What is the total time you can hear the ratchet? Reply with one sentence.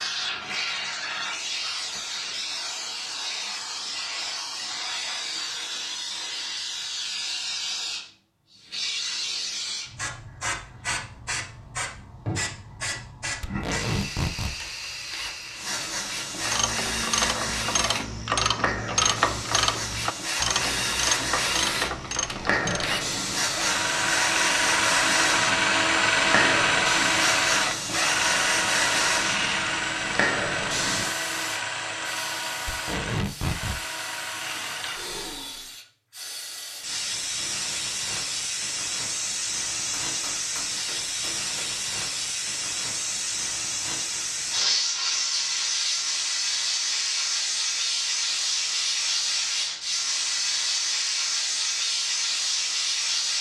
You can hear the ratchet for 7 seconds altogether.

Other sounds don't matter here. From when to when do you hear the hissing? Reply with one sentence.
You can hear the hissing from 0.0 to 53.3 s.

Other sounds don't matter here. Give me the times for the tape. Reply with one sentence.
The tape can be heard from 13.4 to 14.6 s and from 32.6 to 33.8 s.